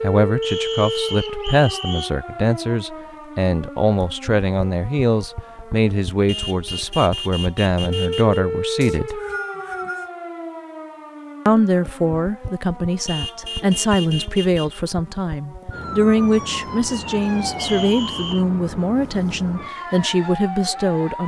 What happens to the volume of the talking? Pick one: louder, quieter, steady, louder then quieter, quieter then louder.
steady.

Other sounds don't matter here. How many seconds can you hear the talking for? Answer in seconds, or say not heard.
19 s.